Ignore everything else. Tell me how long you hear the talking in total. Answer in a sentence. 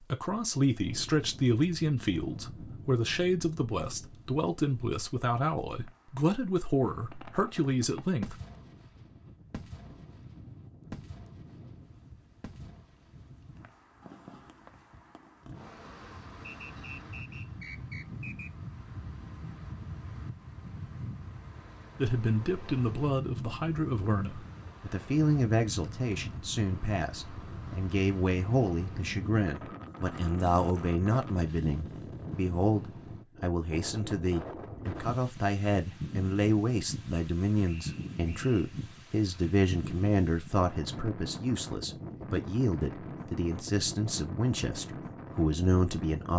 The talking can be heard for 33 seconds in total.